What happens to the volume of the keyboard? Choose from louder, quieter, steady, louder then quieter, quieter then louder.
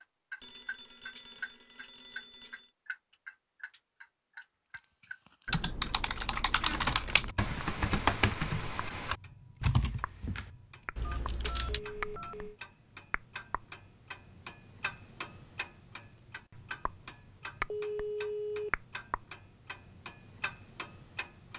quieter.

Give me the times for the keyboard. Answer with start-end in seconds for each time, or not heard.
5.5-11.8.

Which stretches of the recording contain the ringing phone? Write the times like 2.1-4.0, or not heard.
0.4-2.7, 11.2-12.6, 17.7-18.7.